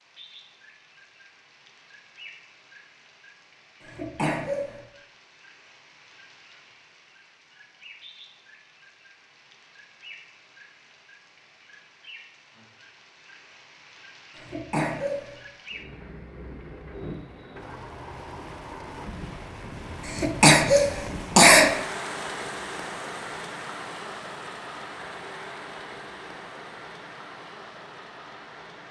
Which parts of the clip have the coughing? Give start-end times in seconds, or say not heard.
3.8-4.8, 14.3-15.3, 20.1-21.7.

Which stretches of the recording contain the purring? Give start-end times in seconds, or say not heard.
not heard.